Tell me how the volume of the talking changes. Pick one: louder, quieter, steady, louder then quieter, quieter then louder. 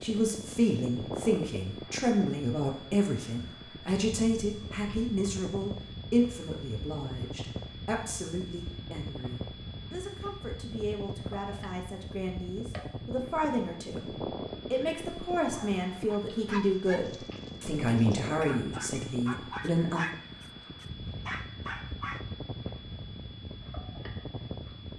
quieter then louder.